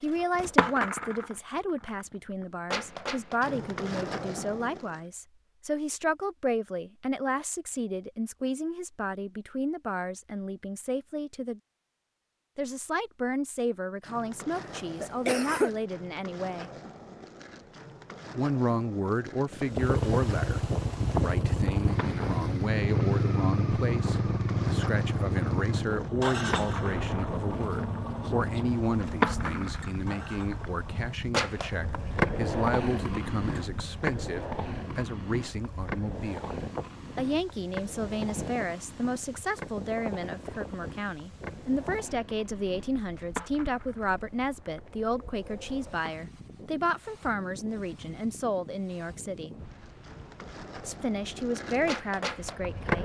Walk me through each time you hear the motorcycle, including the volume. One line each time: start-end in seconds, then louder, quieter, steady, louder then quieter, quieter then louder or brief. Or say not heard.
19.8-31.2 quieter.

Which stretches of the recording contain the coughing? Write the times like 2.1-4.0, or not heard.
14.6-15.7.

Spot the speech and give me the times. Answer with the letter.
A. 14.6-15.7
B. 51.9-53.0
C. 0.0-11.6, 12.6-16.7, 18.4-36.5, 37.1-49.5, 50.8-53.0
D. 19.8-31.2
C.